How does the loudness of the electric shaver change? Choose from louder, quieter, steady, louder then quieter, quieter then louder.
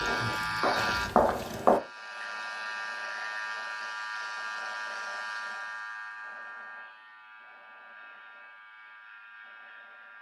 quieter.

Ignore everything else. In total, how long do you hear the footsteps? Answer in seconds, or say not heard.
2 s.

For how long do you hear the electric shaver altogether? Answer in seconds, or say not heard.
10 s.